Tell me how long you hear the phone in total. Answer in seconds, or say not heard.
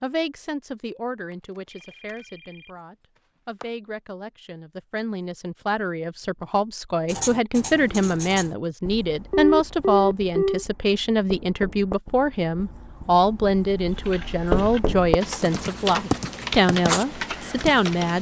2 s.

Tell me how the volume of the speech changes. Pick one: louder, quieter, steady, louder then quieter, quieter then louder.
louder.